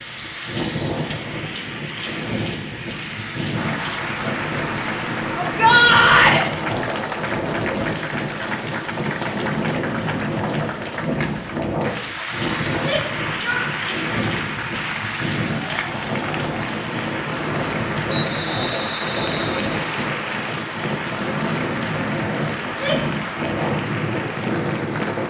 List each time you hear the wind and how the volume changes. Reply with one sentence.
The wind can be heard from 0.0 to 25.2 s, at a steady volume.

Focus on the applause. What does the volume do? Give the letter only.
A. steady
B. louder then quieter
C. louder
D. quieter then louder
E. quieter
A.